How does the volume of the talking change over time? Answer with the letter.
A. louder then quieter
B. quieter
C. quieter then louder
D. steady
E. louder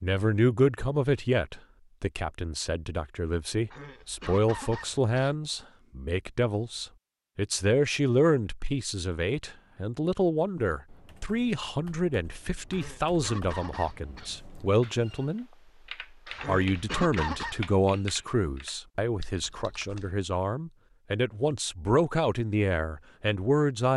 D.